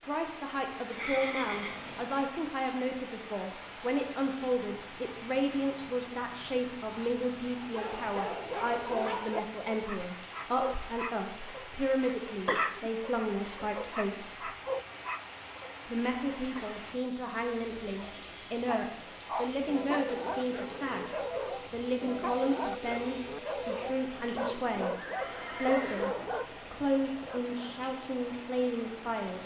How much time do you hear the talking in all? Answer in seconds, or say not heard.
27 s.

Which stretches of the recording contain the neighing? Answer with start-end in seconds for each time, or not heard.
0.8-2.3, 24.9-26.4.